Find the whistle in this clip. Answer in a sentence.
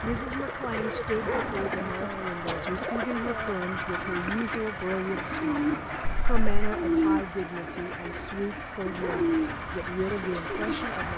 You can't hear the whistle here.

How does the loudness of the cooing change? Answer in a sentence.
The volume of the cooing goes up.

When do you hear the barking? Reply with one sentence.
You can hear the barking from 1.1 to 1.9 s and from 8.9 to 9.7 s.